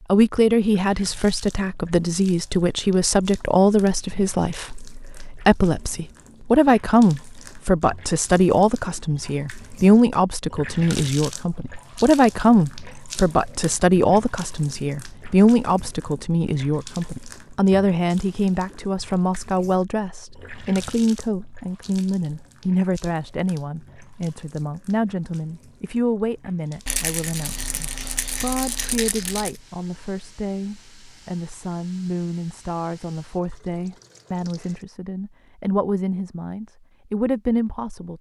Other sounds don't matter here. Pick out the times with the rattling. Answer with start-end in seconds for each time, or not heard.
26.9-29.6.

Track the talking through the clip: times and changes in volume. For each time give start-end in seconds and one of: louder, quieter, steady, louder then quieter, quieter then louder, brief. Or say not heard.
0.1-38.1 quieter.